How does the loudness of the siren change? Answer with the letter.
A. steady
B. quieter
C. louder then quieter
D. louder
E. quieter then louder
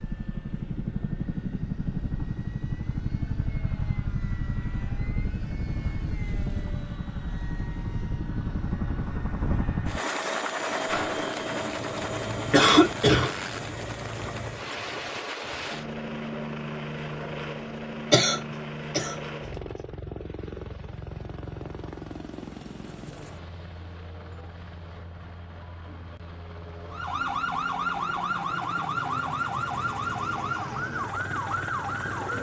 A.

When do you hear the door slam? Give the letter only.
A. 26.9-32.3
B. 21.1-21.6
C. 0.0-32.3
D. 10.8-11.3
D.